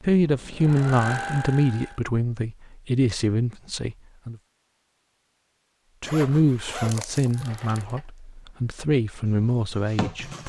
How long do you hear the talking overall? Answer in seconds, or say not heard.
9 s.